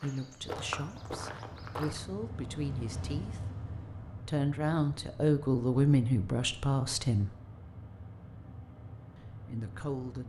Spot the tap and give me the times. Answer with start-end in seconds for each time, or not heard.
not heard.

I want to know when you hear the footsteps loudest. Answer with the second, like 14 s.
1 s.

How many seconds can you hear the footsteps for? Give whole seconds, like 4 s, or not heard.
2 s.